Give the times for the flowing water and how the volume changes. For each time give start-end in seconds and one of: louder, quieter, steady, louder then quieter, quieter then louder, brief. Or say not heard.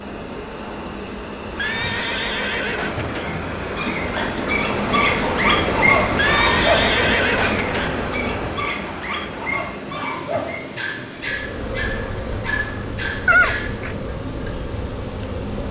0.0-15.6 louder then quieter.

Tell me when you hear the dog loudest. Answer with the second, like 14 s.
6 s.